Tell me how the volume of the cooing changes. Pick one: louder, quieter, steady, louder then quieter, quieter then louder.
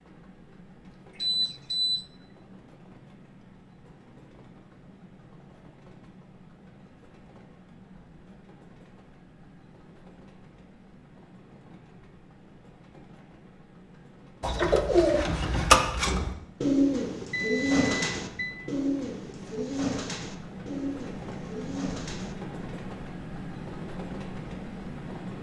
quieter.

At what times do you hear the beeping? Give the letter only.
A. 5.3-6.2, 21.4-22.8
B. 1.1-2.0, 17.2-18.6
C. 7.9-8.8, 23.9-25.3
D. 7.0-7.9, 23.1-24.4
B.